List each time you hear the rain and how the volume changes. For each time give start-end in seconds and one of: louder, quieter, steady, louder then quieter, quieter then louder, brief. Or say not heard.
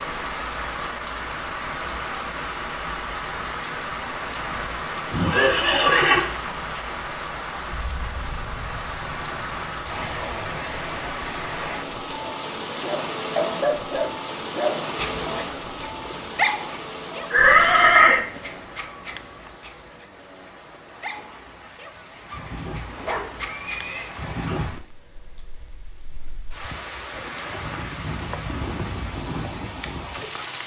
0.0-30.6 quieter then louder.